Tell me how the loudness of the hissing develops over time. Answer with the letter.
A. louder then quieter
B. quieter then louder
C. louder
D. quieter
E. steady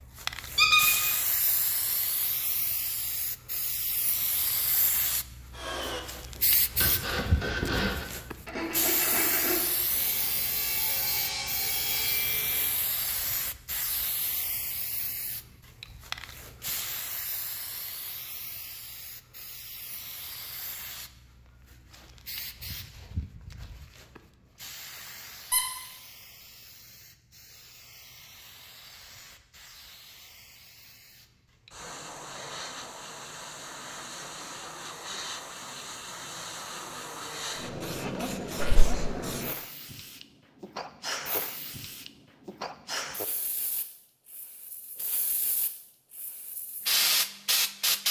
B.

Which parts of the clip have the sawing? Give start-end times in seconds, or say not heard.
5.5-12.7.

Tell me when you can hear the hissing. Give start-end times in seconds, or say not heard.
0.1-48.0.